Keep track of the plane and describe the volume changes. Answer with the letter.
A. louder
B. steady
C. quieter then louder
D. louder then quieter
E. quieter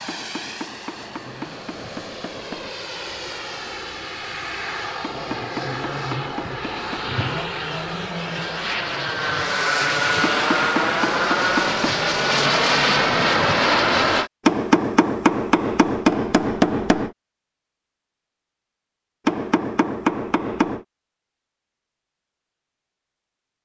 A.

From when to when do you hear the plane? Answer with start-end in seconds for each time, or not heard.
0.0-14.3.